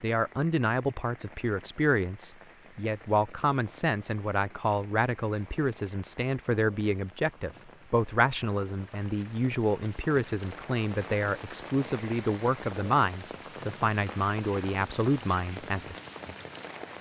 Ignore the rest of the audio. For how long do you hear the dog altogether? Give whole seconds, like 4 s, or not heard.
not heard.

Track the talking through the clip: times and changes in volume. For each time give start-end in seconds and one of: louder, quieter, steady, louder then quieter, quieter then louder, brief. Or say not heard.
0.0-15.9 steady.